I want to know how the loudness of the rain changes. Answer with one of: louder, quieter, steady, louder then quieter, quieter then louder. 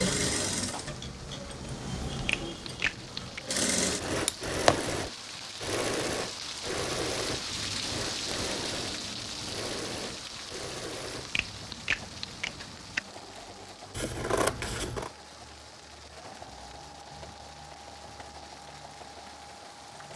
louder then quieter.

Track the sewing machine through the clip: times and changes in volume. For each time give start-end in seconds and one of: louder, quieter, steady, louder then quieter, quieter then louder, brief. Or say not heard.
0.0-20.1 quieter.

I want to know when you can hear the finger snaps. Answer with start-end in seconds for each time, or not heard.
2.1-3.5, 11.2-13.0.